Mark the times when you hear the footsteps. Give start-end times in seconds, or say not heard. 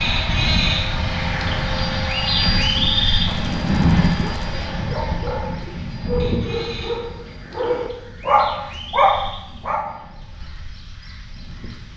not heard.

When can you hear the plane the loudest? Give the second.
4 s.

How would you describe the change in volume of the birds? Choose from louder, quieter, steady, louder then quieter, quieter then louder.
quieter.